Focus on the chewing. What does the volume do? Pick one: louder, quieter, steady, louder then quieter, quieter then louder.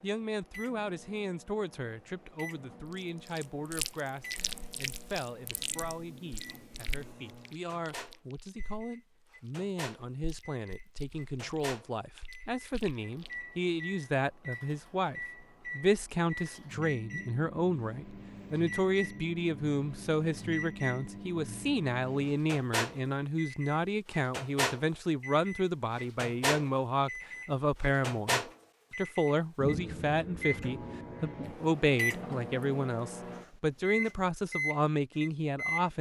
quieter then louder.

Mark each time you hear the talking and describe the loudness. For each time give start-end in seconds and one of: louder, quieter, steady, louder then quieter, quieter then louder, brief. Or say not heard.
0.0-35.9 louder.